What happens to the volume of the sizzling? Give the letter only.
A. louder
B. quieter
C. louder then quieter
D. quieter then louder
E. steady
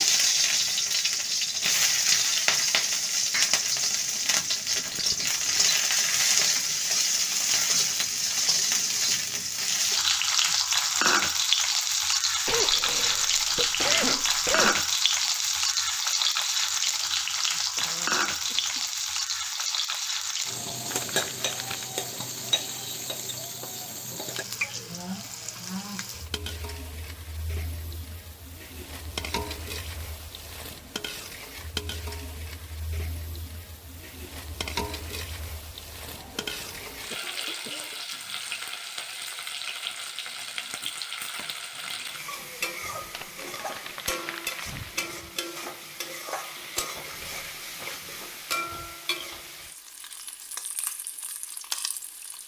B.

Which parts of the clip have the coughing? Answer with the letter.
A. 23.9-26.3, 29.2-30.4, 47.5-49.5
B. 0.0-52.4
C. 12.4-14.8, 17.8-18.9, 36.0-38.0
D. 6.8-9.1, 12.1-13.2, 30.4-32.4
C.